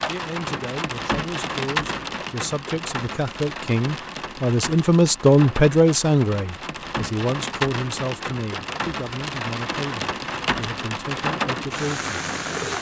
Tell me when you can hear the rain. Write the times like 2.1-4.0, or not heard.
0.0-12.7.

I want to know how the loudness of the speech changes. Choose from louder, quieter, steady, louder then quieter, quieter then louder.
louder then quieter.